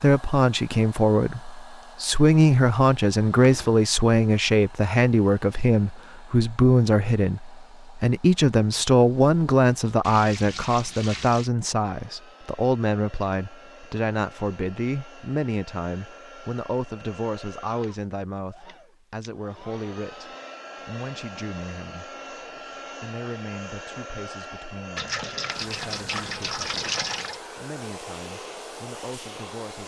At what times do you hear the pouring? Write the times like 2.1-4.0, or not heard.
3.4-3.9, 10.0-11.5, 24.9-27.4.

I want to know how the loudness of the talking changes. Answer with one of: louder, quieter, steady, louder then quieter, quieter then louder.
quieter.